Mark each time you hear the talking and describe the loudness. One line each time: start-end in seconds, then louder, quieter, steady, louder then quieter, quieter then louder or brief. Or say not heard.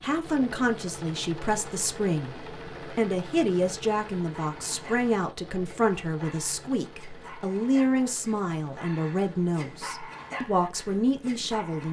0.0-11.8 steady.